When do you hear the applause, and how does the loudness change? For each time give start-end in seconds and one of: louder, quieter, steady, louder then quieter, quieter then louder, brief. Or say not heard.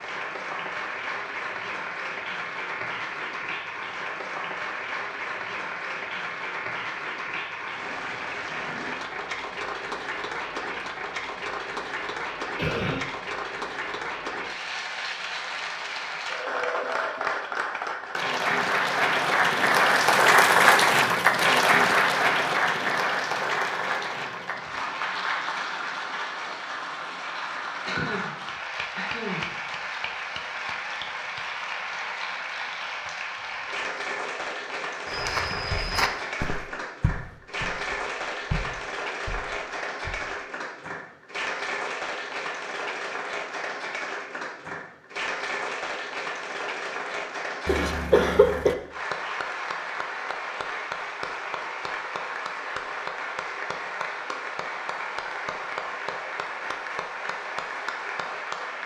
0.0-58.8 louder then quieter.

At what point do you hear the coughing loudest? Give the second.
48 s.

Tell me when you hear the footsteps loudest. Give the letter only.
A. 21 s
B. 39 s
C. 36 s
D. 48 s
C.